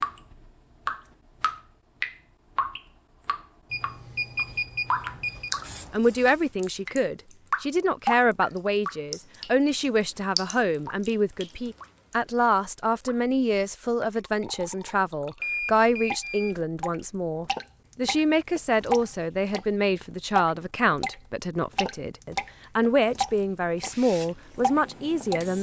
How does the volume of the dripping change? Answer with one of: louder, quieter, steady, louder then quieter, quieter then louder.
quieter then louder.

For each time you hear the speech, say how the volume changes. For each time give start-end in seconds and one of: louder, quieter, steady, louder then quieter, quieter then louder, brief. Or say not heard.
5.9-25.5 steady.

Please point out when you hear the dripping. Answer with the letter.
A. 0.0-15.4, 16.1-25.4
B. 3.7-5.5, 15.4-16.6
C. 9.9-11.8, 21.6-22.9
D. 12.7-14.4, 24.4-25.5
A.